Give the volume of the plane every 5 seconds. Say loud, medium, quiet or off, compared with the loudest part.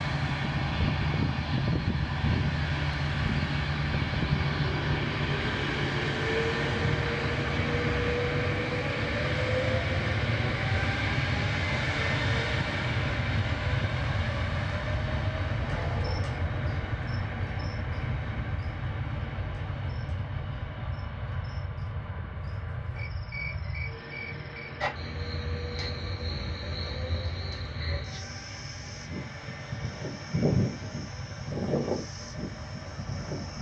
loud, loud, loud, medium, medium, quiet, quiet.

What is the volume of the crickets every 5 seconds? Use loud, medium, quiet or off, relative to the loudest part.
off, off, off, quiet, medium, medium, loud.